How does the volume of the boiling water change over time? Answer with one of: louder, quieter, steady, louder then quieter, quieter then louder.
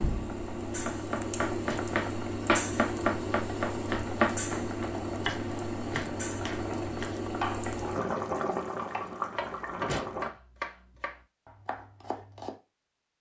steady.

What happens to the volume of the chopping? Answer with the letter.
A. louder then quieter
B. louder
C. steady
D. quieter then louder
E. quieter
E.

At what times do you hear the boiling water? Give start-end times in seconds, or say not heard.
0.0-10.3.